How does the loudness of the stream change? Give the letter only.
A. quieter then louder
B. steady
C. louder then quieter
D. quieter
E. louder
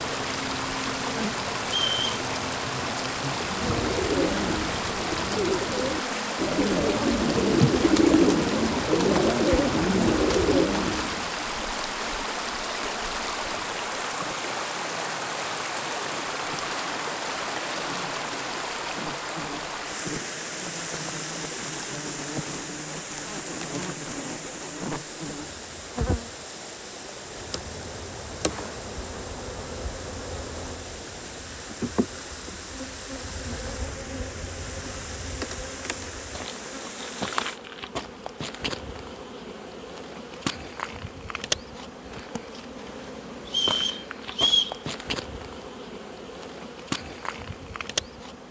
D.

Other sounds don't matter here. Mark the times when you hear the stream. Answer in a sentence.
You can hear the stream from 0.0 to 37.6 s.